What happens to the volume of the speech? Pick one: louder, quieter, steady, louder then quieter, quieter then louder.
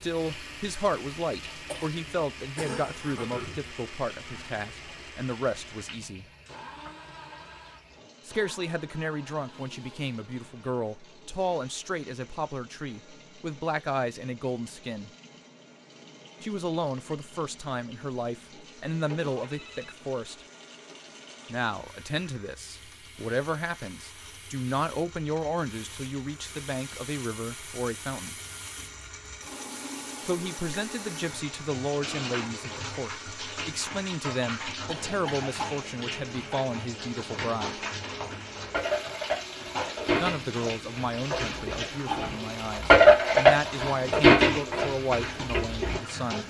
steady.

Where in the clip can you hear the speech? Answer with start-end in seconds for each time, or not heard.
0.0-6.2, 8.2-15.1, 16.4-20.4, 21.5-28.4, 30.2-37.8, 40.2-46.4.